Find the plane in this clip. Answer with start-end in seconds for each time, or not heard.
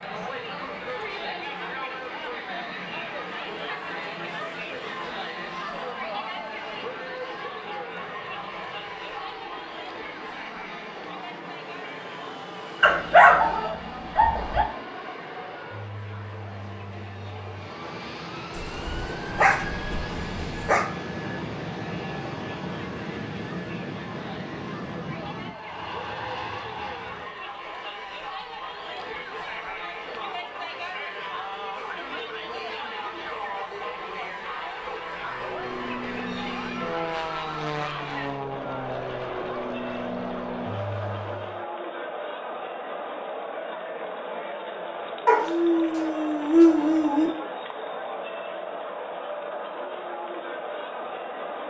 0.0-27.5, 35.1-41.6.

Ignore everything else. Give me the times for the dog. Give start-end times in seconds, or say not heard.
12.8-14.7, 18.5-20.9, 45.2-47.3.